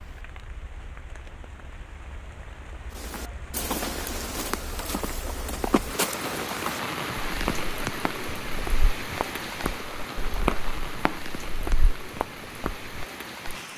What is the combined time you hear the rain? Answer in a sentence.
You can hear the rain for 14 seconds altogether.